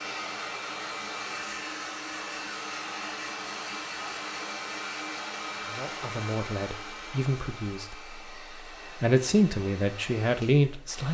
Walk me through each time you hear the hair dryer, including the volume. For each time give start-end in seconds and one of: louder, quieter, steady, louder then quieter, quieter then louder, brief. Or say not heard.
0.0-11.0 quieter.